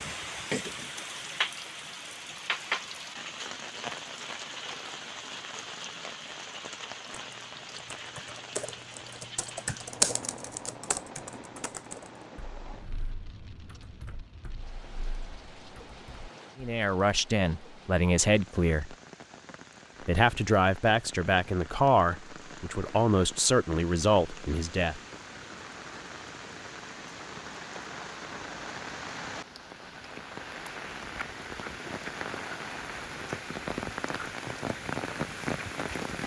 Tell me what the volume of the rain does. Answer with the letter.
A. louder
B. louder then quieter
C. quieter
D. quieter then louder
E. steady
D.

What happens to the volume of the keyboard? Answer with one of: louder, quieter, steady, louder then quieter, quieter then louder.
louder then quieter.